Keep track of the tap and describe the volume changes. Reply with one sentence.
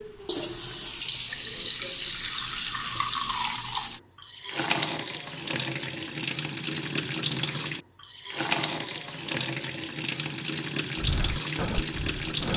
The volume of the tap stays about the same.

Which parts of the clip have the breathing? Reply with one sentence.
The breathing can be heard from 10.9 to 12.5 s.